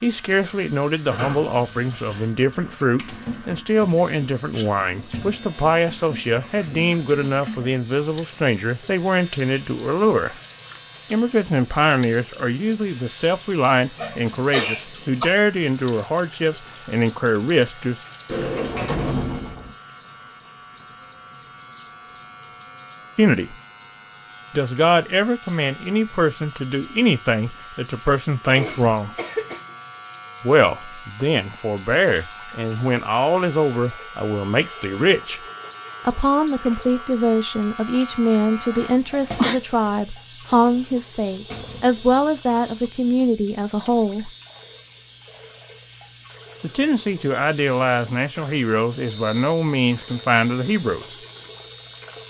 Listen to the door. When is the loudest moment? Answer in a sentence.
The volume of the door peaks at 19 seconds.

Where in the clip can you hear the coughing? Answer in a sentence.
You can hear the coughing from 13.9 to 15.2 s, from 28.4 to 29.7 s and from 38.8 to 39.5 s.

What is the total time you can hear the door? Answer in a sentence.
The door can be heard for 3 seconds in total.